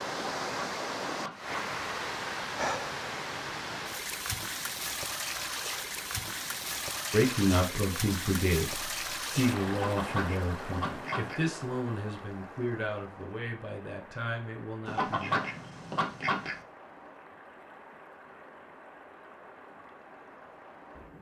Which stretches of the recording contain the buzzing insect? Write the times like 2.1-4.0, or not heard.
not heard.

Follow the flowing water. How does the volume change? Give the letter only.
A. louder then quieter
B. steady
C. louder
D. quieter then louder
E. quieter
E.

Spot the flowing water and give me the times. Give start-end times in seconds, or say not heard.
0.0-21.1.